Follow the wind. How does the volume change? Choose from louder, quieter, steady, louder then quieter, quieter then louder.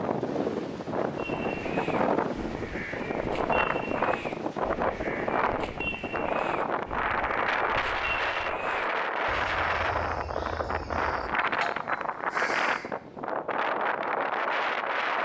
steady.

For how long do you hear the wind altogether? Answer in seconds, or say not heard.
15 s.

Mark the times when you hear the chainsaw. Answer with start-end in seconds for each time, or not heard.
not heard.